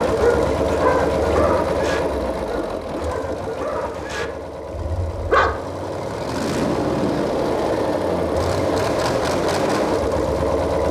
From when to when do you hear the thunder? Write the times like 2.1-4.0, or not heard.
6.2-7.5.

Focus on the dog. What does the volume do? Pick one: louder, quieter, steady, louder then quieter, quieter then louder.
quieter.